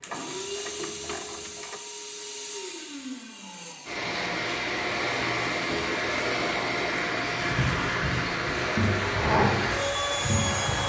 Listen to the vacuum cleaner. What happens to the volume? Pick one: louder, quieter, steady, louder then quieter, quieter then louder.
louder.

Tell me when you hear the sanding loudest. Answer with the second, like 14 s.
9 s.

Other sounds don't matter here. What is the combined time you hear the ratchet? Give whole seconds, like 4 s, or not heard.
2 s.